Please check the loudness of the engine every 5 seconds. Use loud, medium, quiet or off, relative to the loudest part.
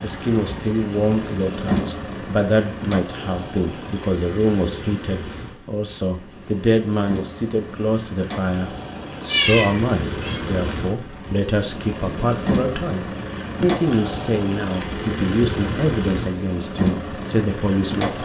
loud, medium, loud, loud.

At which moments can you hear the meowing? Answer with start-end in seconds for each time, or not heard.
9.2-10.4.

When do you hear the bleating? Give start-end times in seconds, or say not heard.
not heard.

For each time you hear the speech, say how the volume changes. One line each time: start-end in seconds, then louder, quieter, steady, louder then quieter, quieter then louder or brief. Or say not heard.
0.0-18.1 steady.